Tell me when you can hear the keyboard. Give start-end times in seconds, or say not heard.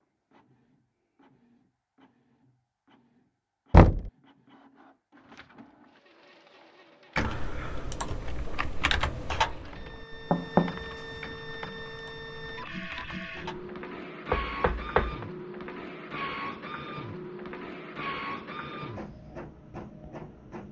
7.2-13.8.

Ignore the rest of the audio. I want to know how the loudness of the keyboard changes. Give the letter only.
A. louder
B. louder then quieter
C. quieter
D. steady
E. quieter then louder
B.